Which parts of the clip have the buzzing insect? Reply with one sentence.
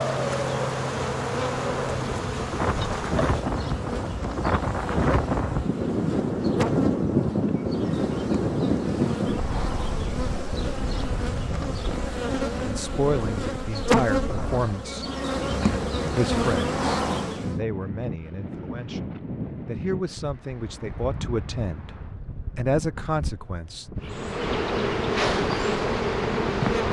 The buzzing insect can be heard from 0.0 to 17.6 s and from 24.0 to 26.8 s.